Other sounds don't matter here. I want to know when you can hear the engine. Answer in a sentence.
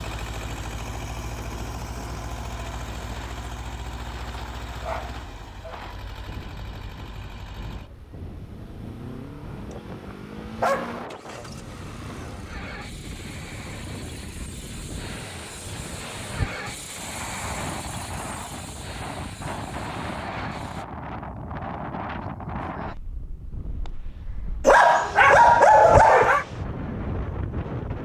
The engine can be heard from 0.0 to 20.9 s.